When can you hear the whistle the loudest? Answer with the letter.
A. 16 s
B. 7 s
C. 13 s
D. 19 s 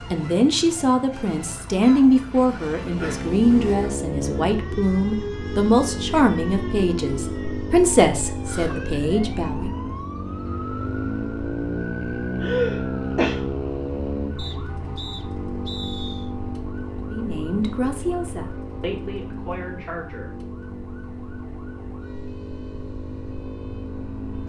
A.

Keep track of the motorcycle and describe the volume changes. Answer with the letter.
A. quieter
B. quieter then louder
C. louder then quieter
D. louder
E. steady
A.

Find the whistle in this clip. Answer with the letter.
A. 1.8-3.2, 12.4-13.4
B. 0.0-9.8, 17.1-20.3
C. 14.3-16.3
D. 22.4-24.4
C.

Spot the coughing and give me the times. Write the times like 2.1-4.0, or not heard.
1.8-3.2, 12.4-13.4.